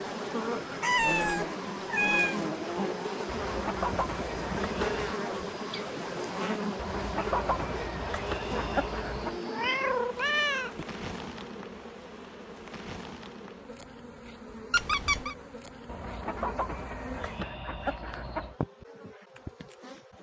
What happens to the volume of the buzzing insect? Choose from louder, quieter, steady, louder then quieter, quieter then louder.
quieter.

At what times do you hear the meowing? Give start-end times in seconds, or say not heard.
0.8-2.4, 9.2-10.8, 14.7-15.3.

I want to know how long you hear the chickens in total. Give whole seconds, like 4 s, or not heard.
7 s.